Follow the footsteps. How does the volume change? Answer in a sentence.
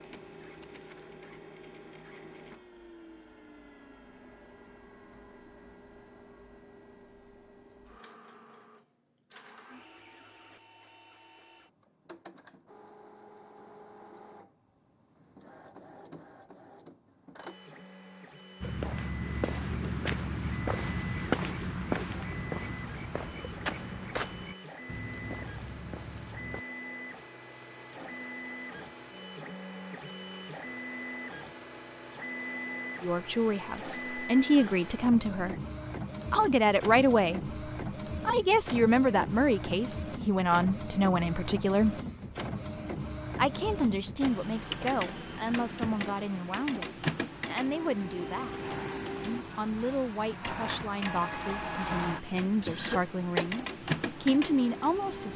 The loudness of the footsteps goes down.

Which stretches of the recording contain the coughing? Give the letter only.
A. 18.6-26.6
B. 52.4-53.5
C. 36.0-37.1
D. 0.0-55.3
B.